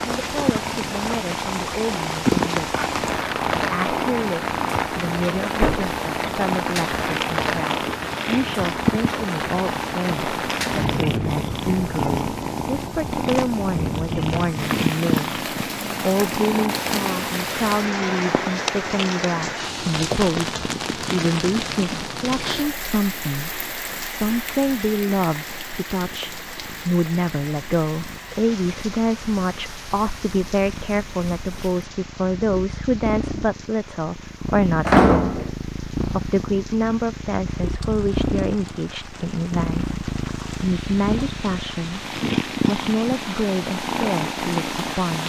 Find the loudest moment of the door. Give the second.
35 s.